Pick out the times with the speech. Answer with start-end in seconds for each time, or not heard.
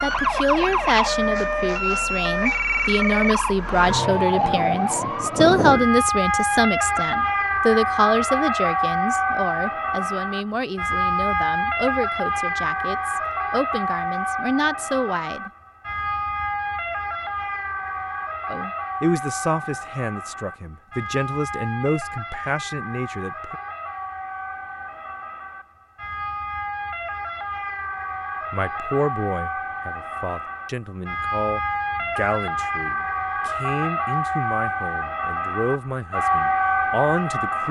0.0-15.5, 18.4-23.6, 28.5-37.6.